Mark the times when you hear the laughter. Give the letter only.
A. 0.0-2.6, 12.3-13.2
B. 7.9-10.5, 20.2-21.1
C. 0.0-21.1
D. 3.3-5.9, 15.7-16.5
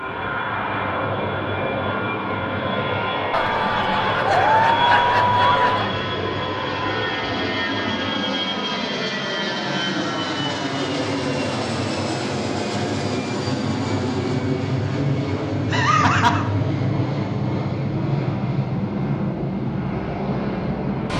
D.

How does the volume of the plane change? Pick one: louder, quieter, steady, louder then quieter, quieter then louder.
steady.